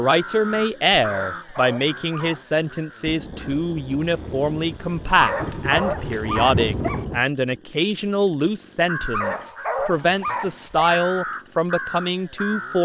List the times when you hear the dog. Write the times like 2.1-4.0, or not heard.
1.1-2.6, 5.1-7.0, 9.0-11.0.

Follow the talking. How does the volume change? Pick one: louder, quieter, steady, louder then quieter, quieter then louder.
steady.